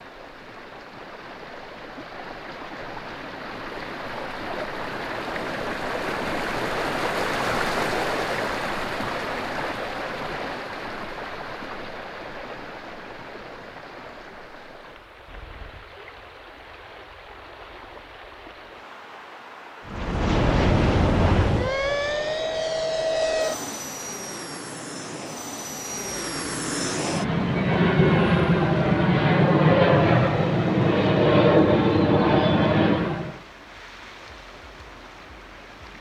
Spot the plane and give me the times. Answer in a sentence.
The plane can be heard from 19.9 to 33.4 s.